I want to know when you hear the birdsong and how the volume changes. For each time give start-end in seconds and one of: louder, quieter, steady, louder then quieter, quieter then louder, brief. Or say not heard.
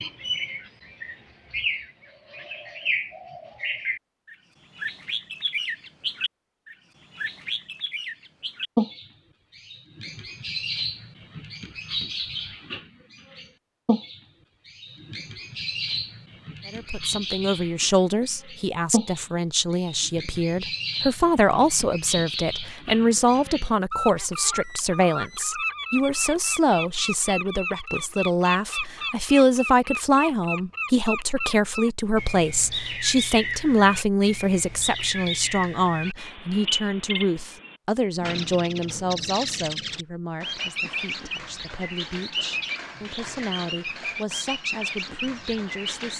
0.0-46.1 steady.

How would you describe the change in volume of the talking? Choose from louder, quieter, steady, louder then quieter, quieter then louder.
quieter.